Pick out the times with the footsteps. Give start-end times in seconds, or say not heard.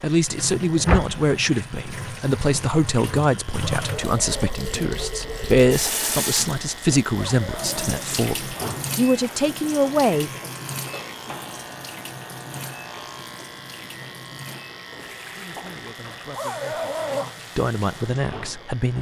not heard.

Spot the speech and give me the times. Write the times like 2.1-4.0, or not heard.
0.0-10.3, 15.3-18.9.